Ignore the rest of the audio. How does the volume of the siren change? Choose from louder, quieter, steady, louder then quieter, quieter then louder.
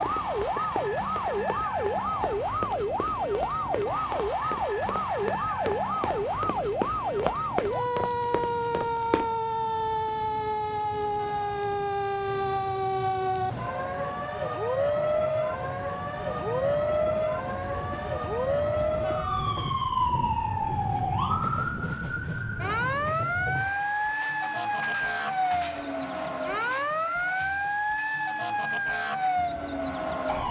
steady.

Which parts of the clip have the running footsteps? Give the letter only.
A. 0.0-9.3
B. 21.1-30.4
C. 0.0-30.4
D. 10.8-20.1
A.